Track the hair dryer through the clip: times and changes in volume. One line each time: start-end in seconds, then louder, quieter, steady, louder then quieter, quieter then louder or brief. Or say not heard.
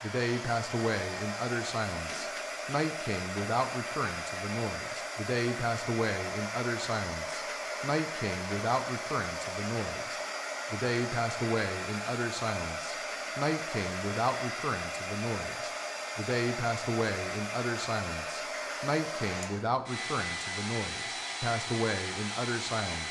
0.0-23.0 steady.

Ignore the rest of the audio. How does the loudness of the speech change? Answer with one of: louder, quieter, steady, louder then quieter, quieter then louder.
steady.